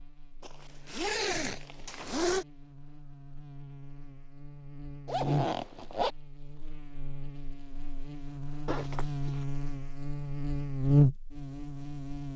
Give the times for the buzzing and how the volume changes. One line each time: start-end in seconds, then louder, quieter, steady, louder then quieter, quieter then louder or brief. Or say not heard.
0.0-12.3 louder.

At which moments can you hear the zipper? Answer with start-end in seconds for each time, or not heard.
0.4-2.5, 5.0-6.1, 8.7-9.4.